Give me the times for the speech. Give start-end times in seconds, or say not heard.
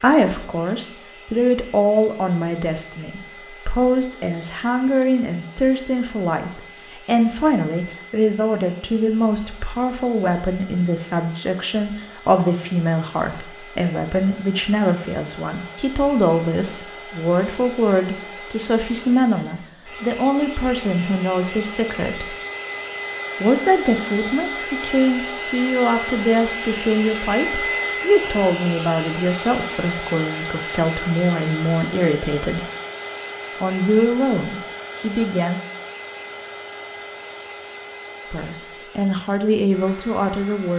0.0-22.4, 23.4-32.6, 33.6-35.6, 38.3-40.7.